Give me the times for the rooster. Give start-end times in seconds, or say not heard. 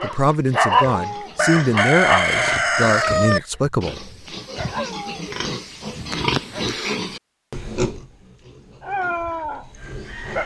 1.4-3.4.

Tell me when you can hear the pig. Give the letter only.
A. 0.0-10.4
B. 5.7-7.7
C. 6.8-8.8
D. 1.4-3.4
A.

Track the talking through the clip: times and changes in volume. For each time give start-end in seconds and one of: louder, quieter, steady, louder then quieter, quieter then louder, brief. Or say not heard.
0.0-4.1 steady.